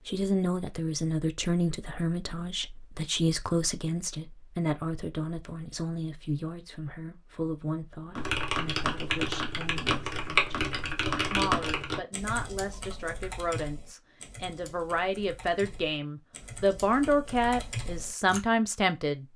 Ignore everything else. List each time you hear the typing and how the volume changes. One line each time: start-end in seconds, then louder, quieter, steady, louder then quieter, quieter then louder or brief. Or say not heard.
8.2-18.4 quieter then louder.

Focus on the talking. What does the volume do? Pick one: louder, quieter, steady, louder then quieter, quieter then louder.
quieter then louder.